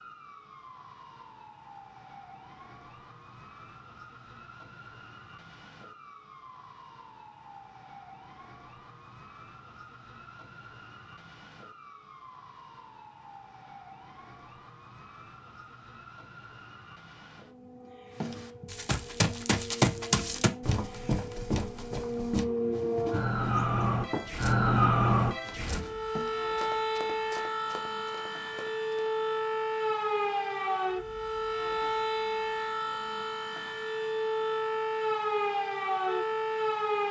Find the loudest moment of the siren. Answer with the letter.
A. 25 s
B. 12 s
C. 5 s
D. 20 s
A.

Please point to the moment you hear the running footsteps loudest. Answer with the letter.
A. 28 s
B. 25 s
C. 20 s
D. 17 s
C.